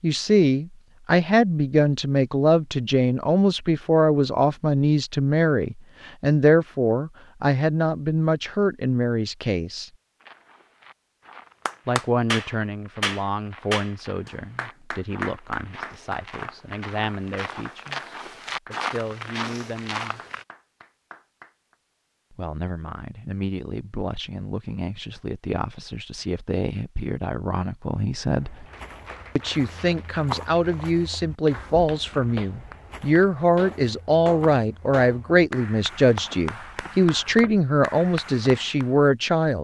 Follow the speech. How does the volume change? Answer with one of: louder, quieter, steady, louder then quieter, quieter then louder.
quieter then louder.